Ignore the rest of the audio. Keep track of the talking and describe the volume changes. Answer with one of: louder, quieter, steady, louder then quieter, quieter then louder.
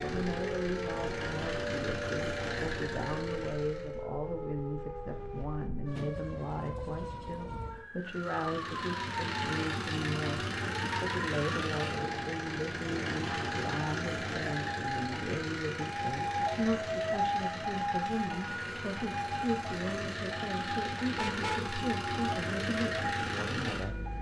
steady.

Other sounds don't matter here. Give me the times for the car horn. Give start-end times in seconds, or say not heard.
21.1-21.8.